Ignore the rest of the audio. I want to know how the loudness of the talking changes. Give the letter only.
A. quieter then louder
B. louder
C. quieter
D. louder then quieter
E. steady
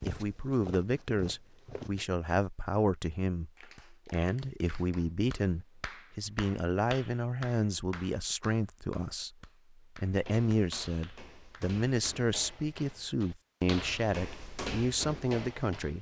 E.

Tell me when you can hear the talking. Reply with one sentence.
The talking can be heard from 0.1 to 15.9 s.